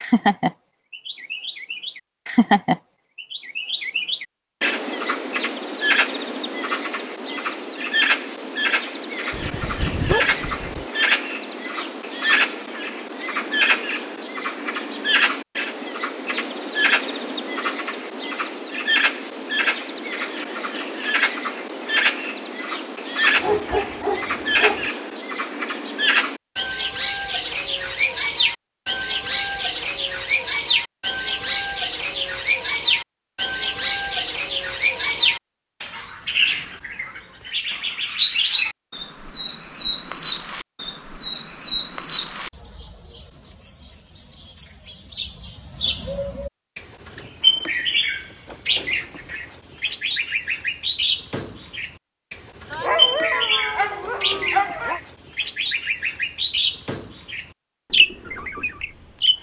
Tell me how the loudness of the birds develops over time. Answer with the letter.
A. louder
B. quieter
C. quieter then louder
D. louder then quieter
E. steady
E.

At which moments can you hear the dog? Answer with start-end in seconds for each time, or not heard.
9.3-10.8, 23.4-24.9, 52.7-55.0.